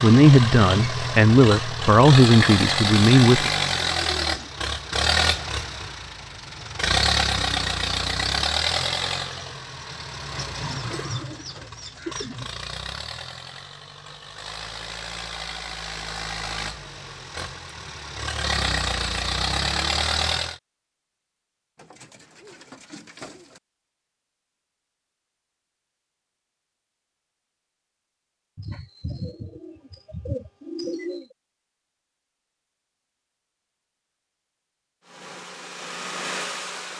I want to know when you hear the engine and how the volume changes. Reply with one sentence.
The engine can be heard from 0.0 to 20.6 s, getting quieter then louder; and briefly from 35.0 to 36.9 s.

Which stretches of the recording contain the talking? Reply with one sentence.
The talking can be heard from 0.0 to 3.5 s.